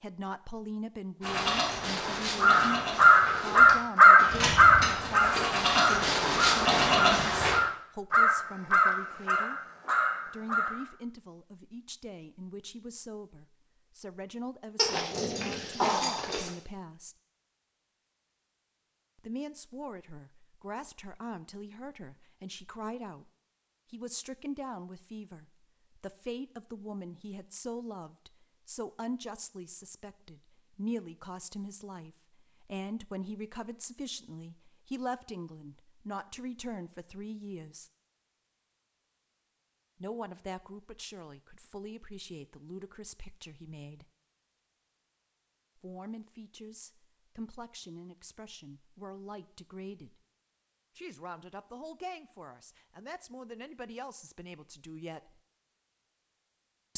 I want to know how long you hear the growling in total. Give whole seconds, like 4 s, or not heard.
2 s.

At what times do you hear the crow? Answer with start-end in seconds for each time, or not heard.
2.4-10.8.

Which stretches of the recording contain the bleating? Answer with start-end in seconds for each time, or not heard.
1.2-7.6.